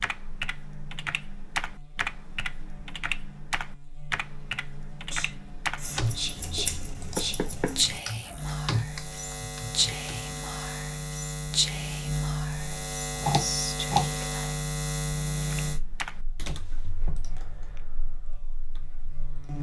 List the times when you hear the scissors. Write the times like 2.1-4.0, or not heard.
5.8-8.0, 13.2-14.2.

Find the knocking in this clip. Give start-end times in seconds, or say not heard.
7.2-7.8, 16.4-17.2.